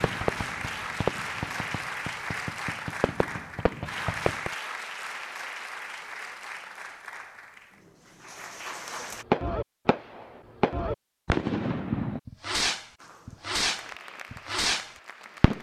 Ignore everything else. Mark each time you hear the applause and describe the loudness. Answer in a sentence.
You can hear the applause from 0.0 to 9.2 s, getting quieter; and briefly from 12.9 to 15.5 s.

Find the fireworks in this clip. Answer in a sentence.
The fireworks can be heard from 0.0 to 4.5 s and from 9.3 to 15.5 s.